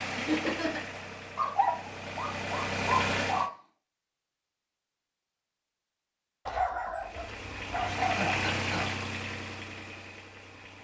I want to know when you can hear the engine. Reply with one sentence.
You can hear the engine from 0.0 to 3.5 s and from 7.0 to 10.7 s.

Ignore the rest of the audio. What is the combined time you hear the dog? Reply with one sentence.
The dog can be heard for 5 seconds in total.